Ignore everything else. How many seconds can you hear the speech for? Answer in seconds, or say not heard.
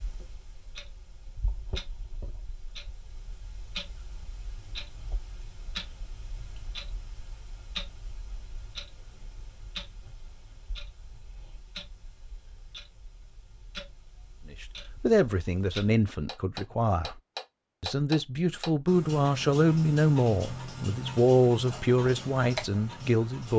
8 s.